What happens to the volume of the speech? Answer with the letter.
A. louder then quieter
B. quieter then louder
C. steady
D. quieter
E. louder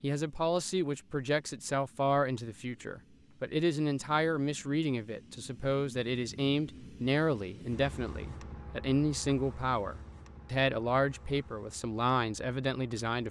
C.